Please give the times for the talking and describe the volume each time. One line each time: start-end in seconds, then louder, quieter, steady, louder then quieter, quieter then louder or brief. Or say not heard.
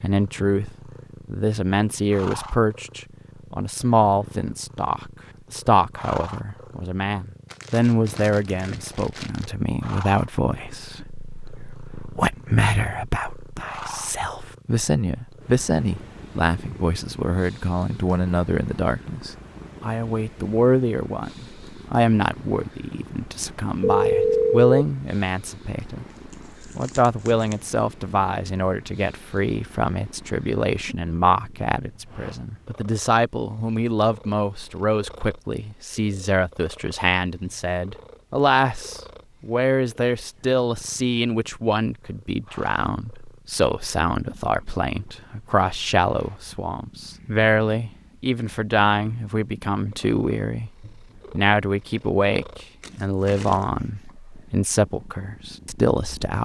0.0-56.3 steady.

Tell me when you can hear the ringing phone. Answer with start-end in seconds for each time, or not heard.
23.8-24.8.